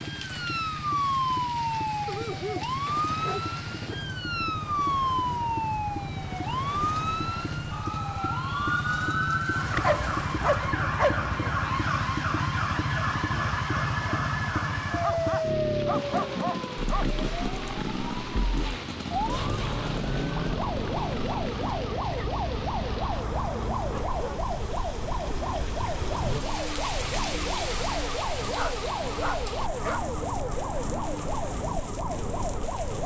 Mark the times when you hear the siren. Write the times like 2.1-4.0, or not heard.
0.0-33.0.